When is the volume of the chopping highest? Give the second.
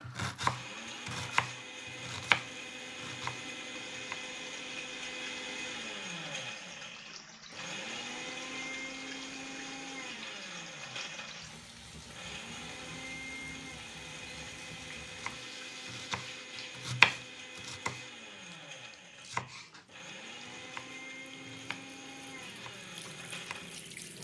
17 s.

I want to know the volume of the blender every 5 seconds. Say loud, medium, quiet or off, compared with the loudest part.
loud, loud, loud, medium, medium.